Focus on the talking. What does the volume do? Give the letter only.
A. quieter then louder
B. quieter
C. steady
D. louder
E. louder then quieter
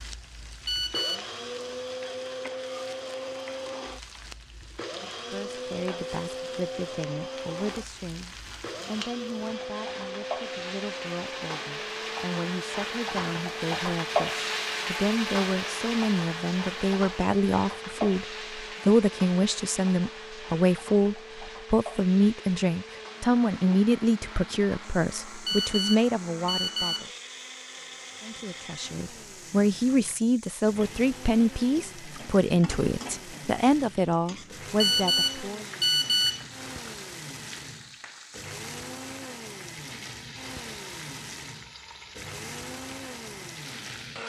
D.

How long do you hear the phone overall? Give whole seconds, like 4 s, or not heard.
4 s.